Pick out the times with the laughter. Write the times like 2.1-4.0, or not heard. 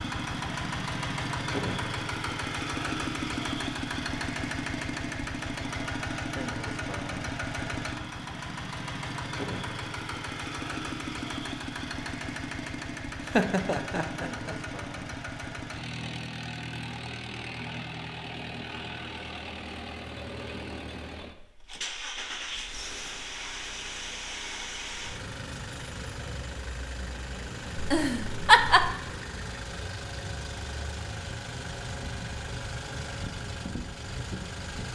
13.2-14.6, 27.8-28.9.